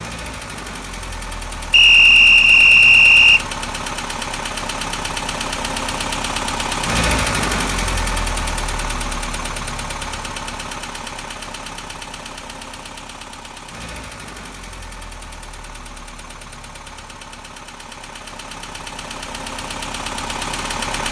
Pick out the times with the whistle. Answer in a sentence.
You can hear the whistle from 1.7 to 3.5 s.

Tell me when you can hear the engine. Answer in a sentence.
The engine can be heard from 0.0 to 21.0 s.